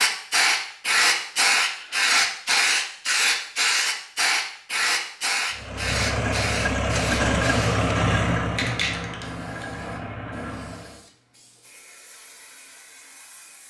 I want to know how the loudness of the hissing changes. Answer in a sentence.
The volume of the hissing goes down.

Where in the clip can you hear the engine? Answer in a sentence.
You can hear the engine from 5.5 to 11.1 s.